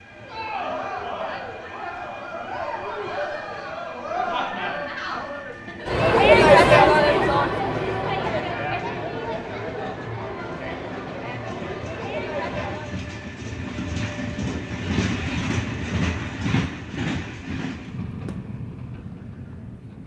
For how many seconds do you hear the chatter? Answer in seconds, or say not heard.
13 s.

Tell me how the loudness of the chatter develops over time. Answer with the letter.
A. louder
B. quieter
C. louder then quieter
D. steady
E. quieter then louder
C.